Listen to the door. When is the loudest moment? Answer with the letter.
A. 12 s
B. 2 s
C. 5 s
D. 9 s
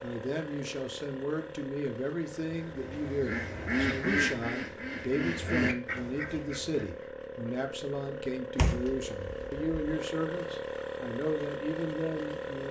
D.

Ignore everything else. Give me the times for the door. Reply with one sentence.
The door can be heard from 8.6 to 9.9 s.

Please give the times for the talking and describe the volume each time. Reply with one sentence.
You can hear the talking from 0.0 to 12.6 s, at a steady volume.